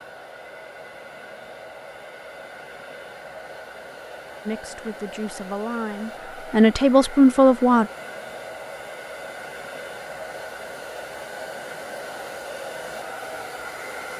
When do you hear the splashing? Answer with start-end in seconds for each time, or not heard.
not heard.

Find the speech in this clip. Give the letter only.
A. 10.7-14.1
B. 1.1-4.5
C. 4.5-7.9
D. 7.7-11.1
C.